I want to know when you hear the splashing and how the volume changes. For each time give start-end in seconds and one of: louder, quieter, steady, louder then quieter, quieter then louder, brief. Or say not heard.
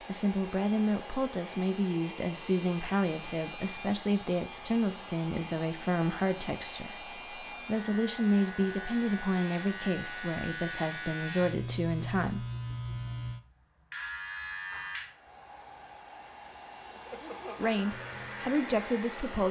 not heard.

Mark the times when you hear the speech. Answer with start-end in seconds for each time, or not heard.
0.1-12.5, 17.6-19.4.